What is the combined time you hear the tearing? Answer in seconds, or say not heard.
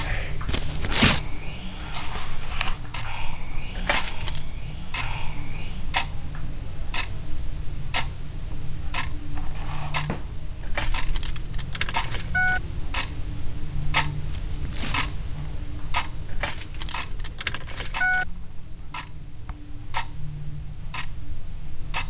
2 s.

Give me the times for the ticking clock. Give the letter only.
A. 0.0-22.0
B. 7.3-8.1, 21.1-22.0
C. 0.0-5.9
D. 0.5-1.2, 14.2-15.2
A.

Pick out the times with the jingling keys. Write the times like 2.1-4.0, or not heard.
3.8-4.4, 10.6-12.6, 16.2-18.2.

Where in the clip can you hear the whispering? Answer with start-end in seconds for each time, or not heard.
0.0-5.9.